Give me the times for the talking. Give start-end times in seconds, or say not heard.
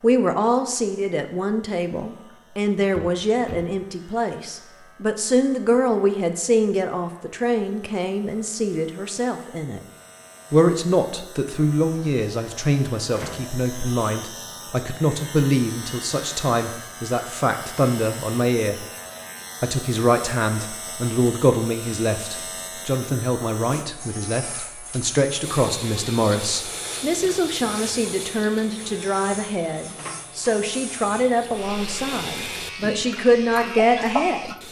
0.0-9.8, 10.5-18.9, 19.6-34.5.